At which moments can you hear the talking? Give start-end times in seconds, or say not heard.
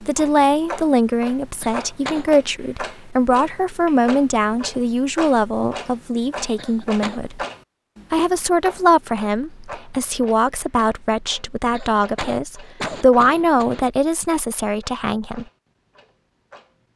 0.0-7.4, 8.1-15.4.